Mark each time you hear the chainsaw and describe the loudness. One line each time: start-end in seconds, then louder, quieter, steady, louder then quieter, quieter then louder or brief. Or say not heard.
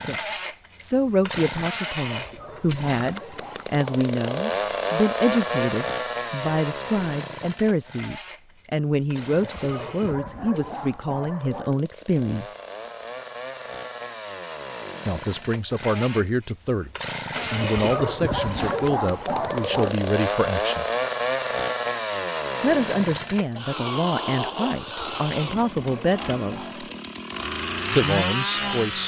0.0-29.0 quieter then louder.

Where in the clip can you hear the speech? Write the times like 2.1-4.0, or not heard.
0.1-12.6, 15.1-16.9, 17.5-20.9, 22.6-26.9, 27.9-29.0.